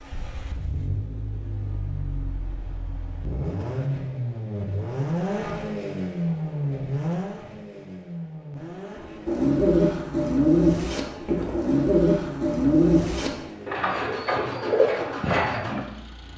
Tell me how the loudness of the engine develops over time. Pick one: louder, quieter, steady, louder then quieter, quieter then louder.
louder then quieter.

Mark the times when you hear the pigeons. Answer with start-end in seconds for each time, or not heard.
9.2-15.8.